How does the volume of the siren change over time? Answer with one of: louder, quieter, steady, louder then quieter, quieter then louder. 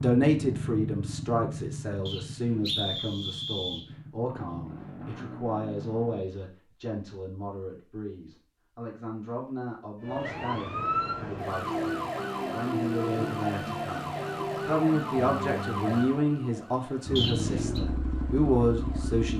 quieter.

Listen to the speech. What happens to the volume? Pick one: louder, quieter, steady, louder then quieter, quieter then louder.
quieter then louder.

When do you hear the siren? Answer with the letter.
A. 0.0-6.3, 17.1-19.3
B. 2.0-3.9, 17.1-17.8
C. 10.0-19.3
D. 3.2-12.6
C.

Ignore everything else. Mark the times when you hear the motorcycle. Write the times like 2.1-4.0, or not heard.
0.0-6.3, 17.1-19.3.